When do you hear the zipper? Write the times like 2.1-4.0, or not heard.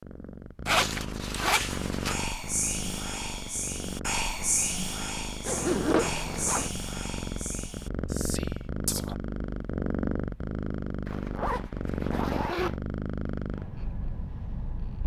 0.7-2.1, 5.5-6.7, 11.1-12.8.